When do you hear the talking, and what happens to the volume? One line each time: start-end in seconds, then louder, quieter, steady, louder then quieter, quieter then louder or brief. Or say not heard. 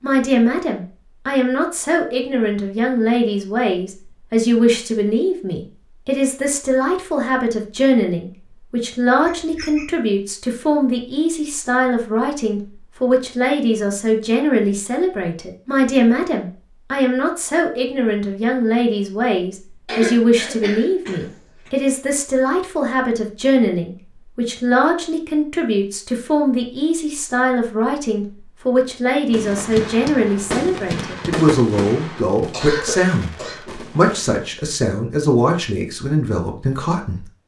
0.0-37.2 steady.